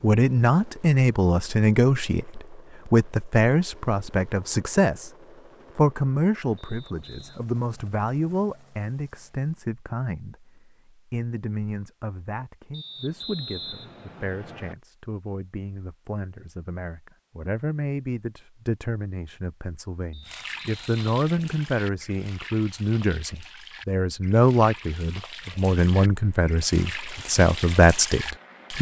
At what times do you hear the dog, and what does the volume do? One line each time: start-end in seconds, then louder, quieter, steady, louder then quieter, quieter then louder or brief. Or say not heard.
not heard.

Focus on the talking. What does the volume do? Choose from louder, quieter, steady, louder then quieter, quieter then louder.
quieter then louder.